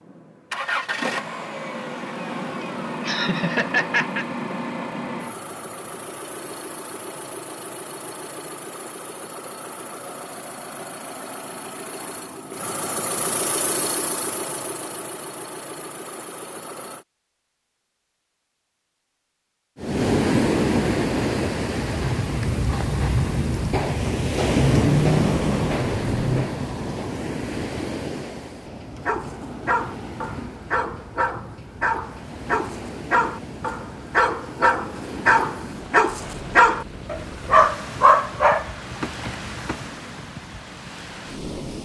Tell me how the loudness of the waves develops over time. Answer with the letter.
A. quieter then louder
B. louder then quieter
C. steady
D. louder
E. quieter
E.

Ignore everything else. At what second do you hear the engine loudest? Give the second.
25 s.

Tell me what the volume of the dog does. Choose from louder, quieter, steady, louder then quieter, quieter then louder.
louder.